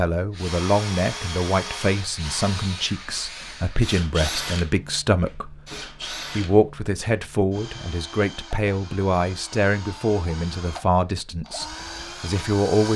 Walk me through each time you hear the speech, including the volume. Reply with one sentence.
You can hear the speech from 0.0 to 12.9 s, at a steady volume.